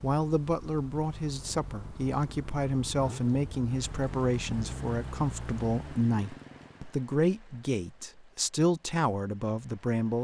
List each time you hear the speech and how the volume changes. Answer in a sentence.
The speech can be heard from 0.0 to 10.1 s, at a steady volume.